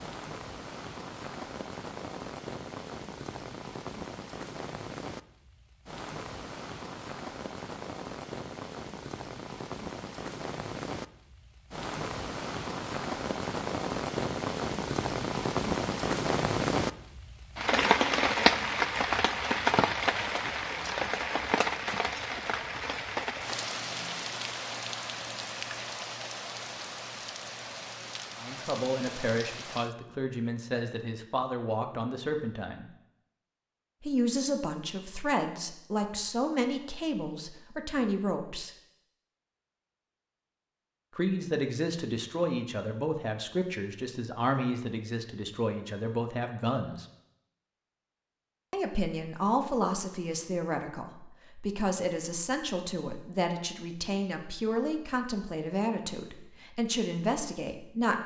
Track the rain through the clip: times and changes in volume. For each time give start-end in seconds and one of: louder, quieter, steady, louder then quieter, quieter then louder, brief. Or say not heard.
0.0-29.9 louder then quieter.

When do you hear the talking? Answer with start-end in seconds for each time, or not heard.
28.4-32.9, 34.0-38.8, 41.1-47.0, 48.7-58.2.